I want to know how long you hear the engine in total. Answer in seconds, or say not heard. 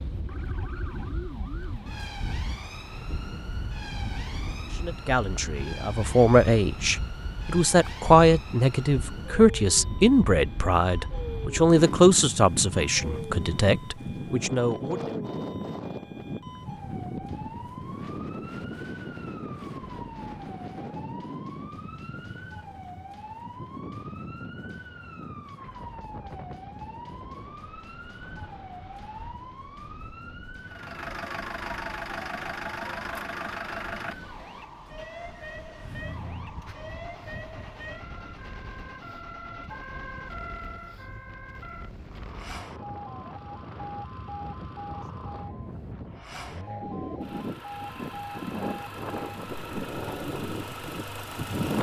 21 s.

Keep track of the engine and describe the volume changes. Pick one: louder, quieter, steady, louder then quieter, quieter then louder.
quieter then louder.